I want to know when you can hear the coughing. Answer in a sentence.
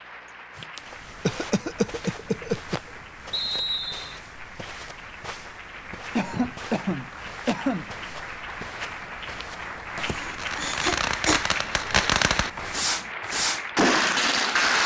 You can hear the coughing from 0.6 to 2.8 s, from 6.2 to 7.8 s and from 9.9 to 11.4 s.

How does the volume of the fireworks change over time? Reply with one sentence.
The loudness of the fireworks goes up.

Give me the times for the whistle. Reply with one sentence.
You can hear the whistle from 3.3 to 4.2 s.